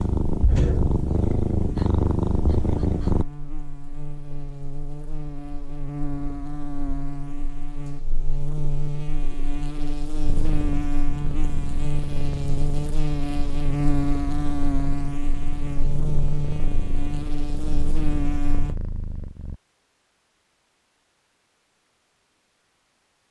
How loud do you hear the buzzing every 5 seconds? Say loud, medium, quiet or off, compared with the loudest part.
medium, medium, loud, loud, off.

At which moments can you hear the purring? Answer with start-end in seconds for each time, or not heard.
0.0-3.2, 10.2-19.6.